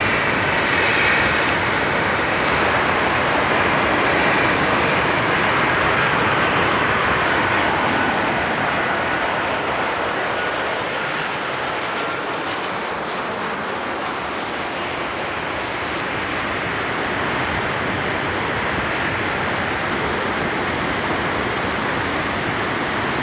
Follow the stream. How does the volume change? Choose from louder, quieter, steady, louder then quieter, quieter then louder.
quieter then louder.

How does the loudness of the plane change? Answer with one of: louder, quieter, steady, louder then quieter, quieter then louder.
quieter.